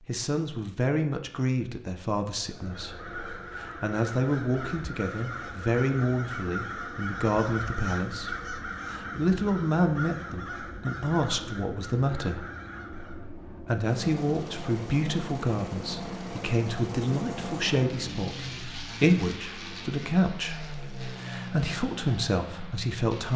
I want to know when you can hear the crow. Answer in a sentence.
You can hear the crow from 2.5 to 13.3 s.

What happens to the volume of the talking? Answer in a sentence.
The volume of the talking stays about the same.